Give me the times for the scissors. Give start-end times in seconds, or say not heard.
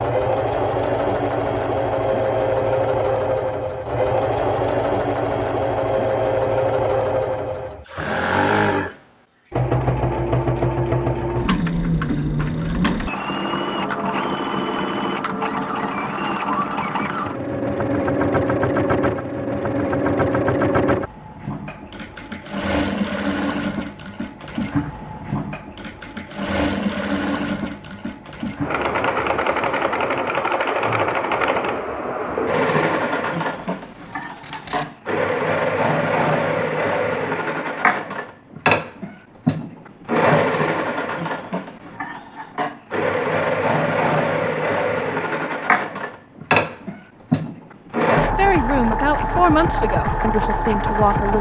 33.5-35.0.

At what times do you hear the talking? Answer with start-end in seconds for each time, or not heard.
48.0-51.3.